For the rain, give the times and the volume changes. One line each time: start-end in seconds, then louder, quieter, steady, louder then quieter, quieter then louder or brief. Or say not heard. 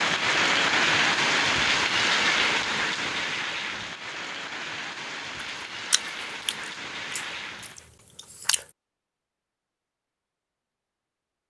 0.0-7.9 quieter.